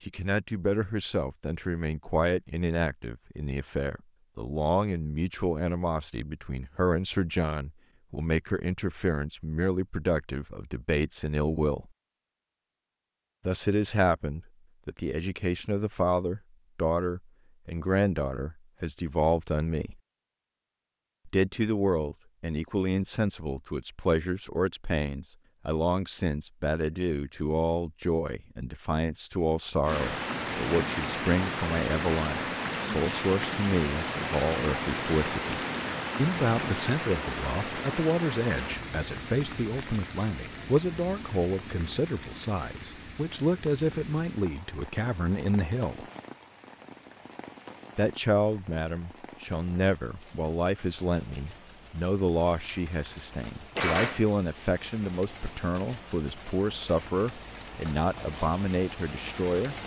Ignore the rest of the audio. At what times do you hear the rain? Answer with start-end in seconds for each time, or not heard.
29.8-59.8.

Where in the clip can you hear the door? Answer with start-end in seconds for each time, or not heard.
52.7-54.3.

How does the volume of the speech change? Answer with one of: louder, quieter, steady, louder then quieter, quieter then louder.
steady.